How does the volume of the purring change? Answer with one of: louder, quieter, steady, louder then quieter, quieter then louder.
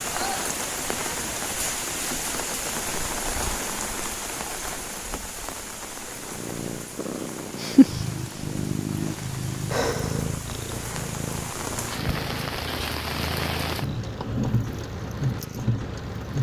quieter.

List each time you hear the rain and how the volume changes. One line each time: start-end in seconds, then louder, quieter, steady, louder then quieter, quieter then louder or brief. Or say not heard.
0.0-16.3 quieter then louder.